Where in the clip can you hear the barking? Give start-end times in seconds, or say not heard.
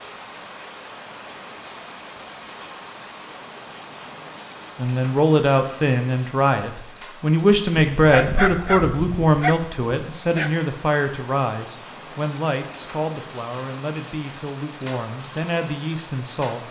8.0-10.6.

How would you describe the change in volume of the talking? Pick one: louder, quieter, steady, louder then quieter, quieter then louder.
quieter.